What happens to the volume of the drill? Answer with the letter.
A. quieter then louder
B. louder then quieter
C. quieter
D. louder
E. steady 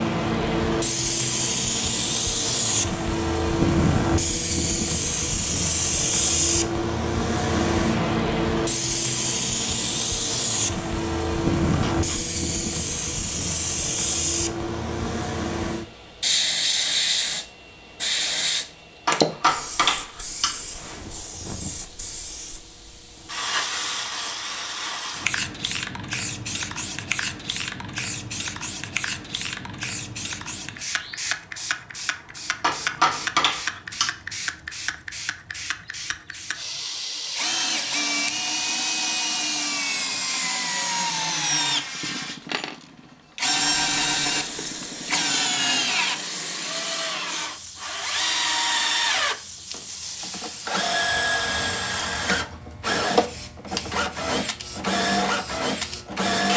E.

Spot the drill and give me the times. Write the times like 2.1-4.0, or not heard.
37.3-56.5.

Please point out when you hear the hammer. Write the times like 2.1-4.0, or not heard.
19.1-20.6, 32.6-34.1.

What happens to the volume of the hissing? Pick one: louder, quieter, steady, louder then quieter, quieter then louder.
quieter.